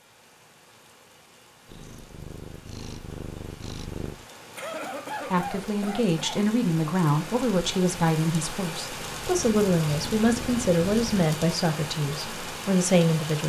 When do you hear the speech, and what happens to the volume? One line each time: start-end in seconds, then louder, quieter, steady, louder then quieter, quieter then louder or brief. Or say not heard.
5.3-13.4 steady.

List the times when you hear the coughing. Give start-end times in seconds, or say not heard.
4.5-6.6.